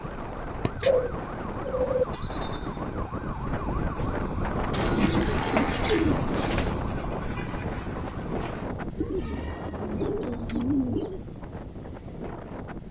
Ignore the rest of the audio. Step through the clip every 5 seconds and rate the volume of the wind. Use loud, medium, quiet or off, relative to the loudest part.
loud, loud, medium.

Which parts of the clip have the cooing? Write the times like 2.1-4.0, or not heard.
0.1-2.0, 4.7-6.8, 8.9-11.2.